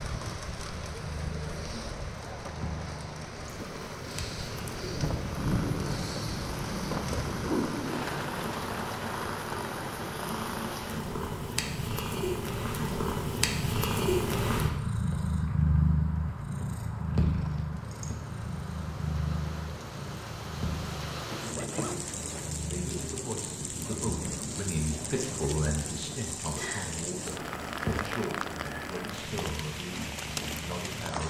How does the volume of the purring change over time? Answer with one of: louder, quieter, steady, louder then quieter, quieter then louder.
louder then quieter.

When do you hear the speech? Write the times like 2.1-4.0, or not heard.
22.7-31.2.